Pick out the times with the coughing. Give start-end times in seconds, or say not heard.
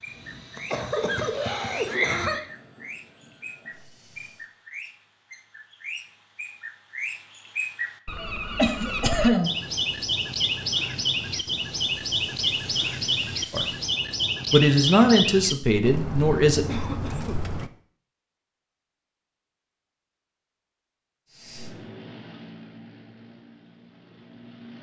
0.6-2.5, 8.6-9.6, 16.6-17.4.